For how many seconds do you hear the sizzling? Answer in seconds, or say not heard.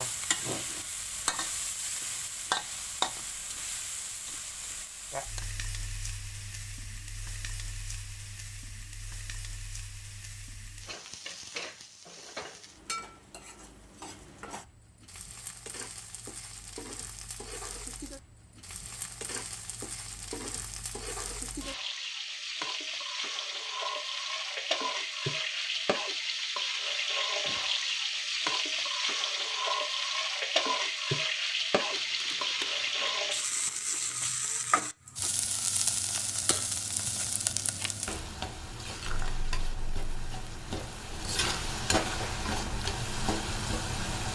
44 s.